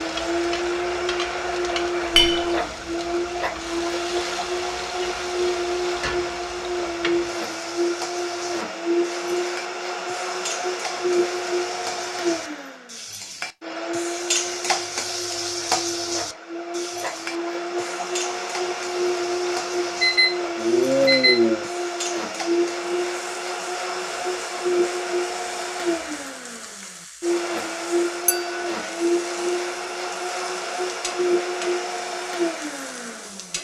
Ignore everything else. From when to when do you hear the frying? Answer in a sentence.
The frying can be heard from 0.0 to 33.6 s.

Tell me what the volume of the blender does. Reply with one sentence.
The volume of the blender stays about the same.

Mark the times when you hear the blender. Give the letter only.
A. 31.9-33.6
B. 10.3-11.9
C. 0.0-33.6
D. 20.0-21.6
C.